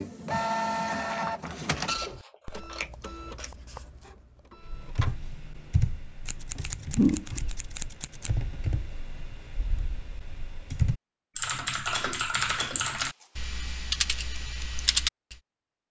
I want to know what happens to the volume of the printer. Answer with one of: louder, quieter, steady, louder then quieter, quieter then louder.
quieter.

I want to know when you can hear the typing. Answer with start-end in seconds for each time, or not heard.
4.6-15.3.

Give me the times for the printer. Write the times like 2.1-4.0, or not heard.
0.0-5.2.